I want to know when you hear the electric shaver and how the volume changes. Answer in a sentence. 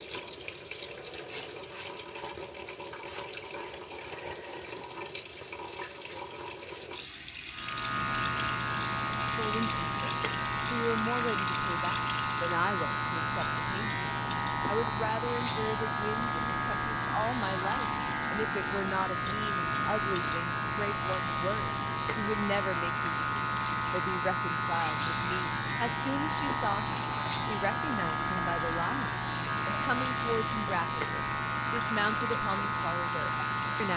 The electric shaver can be heard from 7.5 to 33.9 s, at a steady volume.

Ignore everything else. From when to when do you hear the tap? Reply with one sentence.
The tap can be heard from 0.0 to 33.9 s.